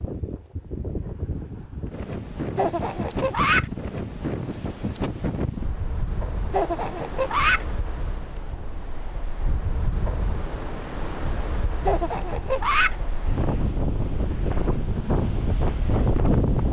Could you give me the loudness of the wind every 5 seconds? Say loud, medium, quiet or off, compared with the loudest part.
medium, medium, medium, loud.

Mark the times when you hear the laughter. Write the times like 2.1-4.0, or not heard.
2.5-3.6, 6.5-7.7, 11.8-12.9.